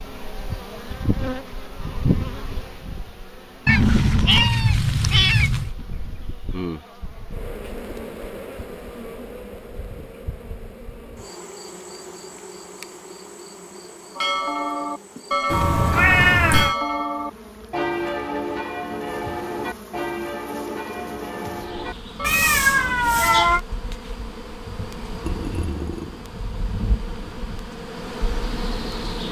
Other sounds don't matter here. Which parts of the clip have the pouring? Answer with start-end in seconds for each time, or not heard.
25.2-26.2.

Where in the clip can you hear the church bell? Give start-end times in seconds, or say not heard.
14.2-22.9.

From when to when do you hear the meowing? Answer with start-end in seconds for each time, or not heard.
3.6-5.7, 15.5-16.8, 22.2-23.6.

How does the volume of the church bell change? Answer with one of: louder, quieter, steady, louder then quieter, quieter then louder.
quieter.